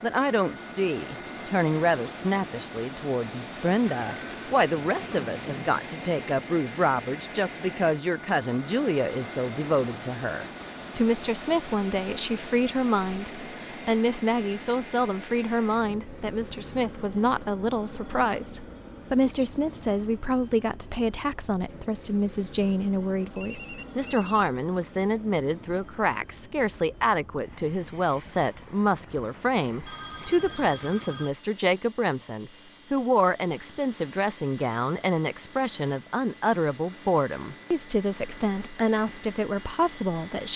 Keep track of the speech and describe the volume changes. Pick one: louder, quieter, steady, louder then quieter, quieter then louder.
steady.